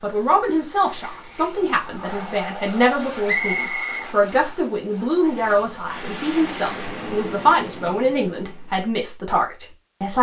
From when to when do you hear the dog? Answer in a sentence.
The dog can't be heard in this clip.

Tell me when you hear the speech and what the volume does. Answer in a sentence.
You can hear the speech from 0.0 to 10.1 s, at a steady volume.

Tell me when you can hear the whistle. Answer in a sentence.
You can hear the whistle from 3.2 to 4.5 s.